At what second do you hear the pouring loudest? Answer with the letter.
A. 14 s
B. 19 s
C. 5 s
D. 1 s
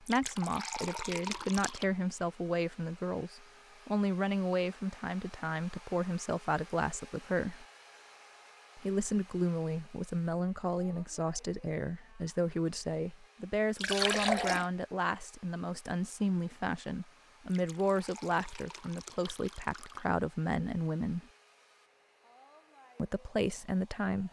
A.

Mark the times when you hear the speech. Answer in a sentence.
You can hear the speech from 0.0 to 7.7 s, from 8.8 to 21.2 s and from 22.9 to 24.2 s.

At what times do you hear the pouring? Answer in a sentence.
The pouring can be heard from 0.1 to 1.9 s, from 13.8 to 14.7 s and from 17.5 to 20.1 s.